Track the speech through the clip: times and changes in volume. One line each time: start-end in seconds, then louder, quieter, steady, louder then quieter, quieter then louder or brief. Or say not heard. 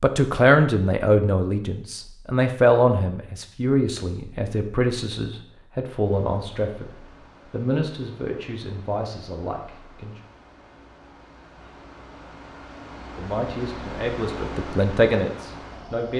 0.0-10.2 quieter
13.2-16.1 brief.